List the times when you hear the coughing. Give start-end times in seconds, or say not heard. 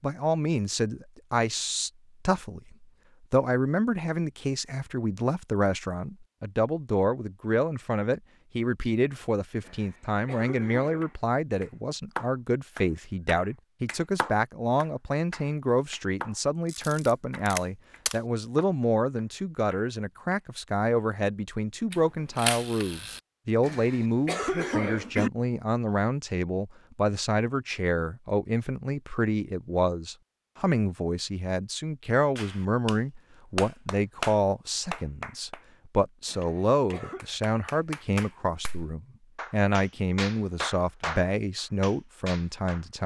9.6-11.2, 23.6-25.3, 36.2-37.2.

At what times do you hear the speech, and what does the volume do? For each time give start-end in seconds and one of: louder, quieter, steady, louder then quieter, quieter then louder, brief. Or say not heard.
0.0-43.0 steady.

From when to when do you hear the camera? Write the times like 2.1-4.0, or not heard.
16.6-18.2, 21.9-23.2.